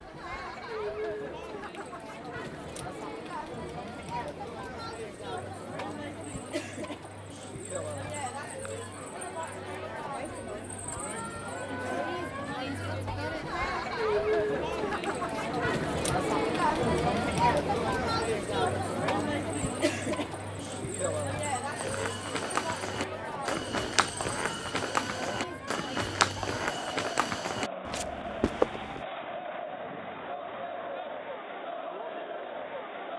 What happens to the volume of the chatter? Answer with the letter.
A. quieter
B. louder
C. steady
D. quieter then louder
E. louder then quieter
E.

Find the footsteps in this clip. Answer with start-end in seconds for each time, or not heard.
21.8-29.1.